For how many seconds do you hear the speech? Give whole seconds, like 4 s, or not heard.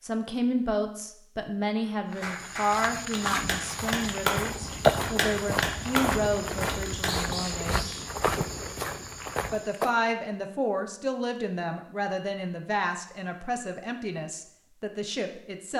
14 s.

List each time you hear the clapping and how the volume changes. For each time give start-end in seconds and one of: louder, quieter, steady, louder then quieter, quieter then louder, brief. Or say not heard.
1.8-7.2 louder.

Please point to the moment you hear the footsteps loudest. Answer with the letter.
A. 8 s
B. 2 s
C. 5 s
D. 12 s
C.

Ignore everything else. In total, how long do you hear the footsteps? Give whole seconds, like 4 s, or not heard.
8 s.